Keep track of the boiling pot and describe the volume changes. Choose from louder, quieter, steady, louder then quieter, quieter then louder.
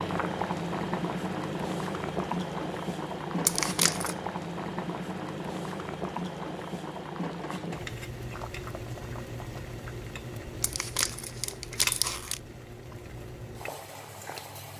quieter.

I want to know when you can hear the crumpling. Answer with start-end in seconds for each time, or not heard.
3.5-4.2, 10.6-12.4.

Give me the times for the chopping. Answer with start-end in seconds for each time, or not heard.
not heard.